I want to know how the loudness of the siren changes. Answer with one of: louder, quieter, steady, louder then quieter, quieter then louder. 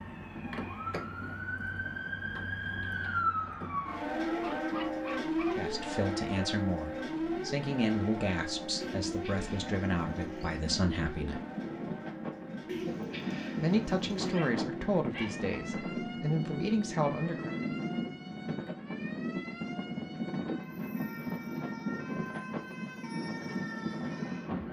quieter.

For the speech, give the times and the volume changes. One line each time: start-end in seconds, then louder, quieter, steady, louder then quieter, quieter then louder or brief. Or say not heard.
5.5-11.4 steady
13.6-17.6 quieter then louder.